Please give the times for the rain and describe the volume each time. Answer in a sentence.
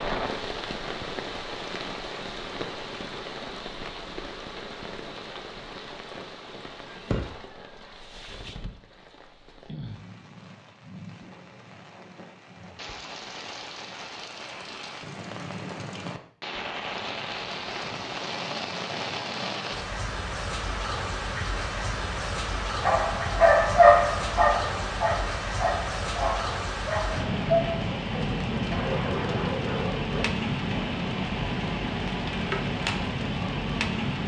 The rain can be heard from 0.0 to 34.2 s, getting quieter then louder.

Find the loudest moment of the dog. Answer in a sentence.
The loudest moment of the dog is at 24 seconds.